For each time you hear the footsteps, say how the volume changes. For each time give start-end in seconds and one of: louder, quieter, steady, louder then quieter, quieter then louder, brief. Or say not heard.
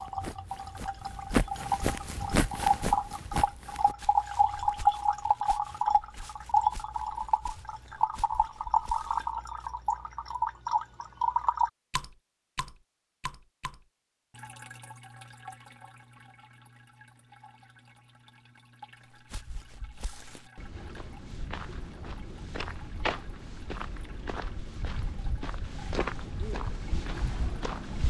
0.0-9.7 quieter
19.1-28.0 louder.